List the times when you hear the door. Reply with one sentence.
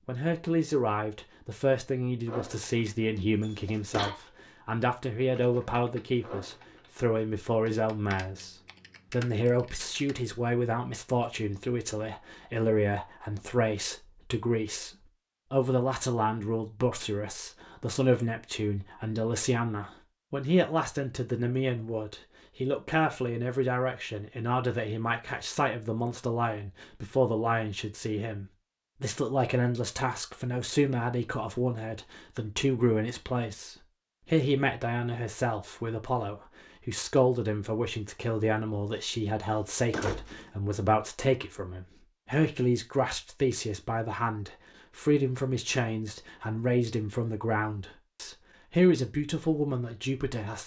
You can hear the door from 3.4 to 4.2 s and from 39.4 to 40.5 s.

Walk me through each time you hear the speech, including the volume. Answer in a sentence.
The speech can be heard from 0.1 to 50.6 s, at a steady volume.